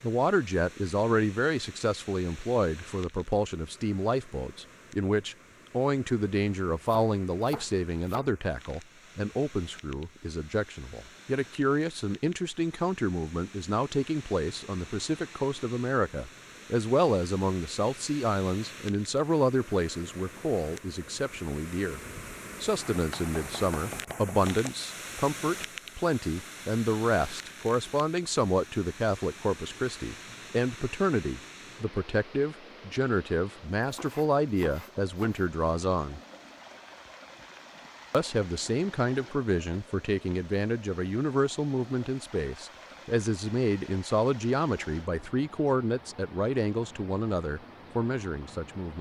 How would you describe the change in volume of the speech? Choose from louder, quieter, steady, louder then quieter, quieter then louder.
steady.